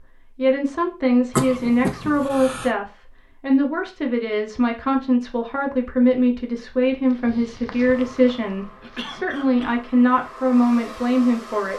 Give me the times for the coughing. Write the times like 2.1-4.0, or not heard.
1.4-2.7, 8.8-9.8.